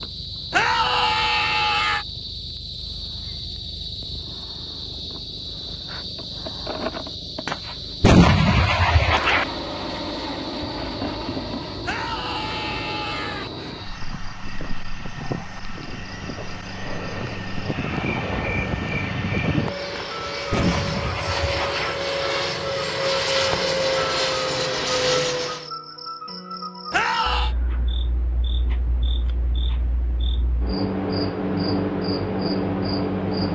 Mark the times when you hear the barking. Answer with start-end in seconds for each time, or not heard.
not heard.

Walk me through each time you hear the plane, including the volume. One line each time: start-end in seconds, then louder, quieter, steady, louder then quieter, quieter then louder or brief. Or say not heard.
9.0-25.7 louder.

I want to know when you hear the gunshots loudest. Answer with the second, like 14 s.
8 s.